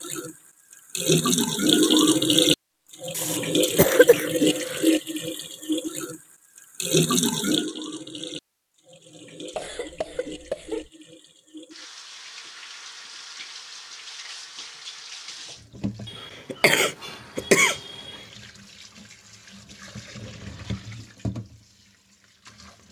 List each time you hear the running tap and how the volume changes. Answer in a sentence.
You can hear the running tap from 0.0 to 22.8 s, getting quieter.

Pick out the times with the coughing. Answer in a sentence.
The coughing can be heard from 3.1 to 4.8 s, from 9.6 to 10.9 s and from 16.1 to 18.1 s.